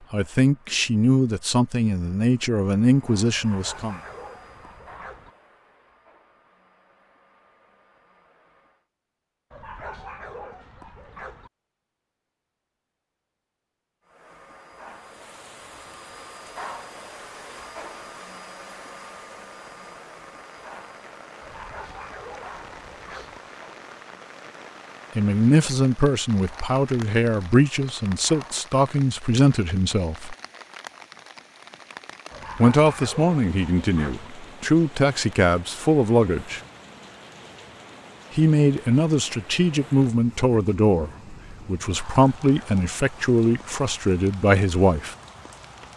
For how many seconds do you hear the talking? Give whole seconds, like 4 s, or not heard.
20 s.